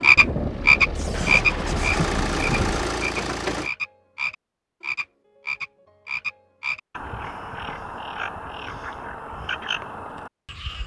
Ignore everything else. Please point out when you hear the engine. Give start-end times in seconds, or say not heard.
0.0-3.7.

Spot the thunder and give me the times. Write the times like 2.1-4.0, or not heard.
0.1-3.0.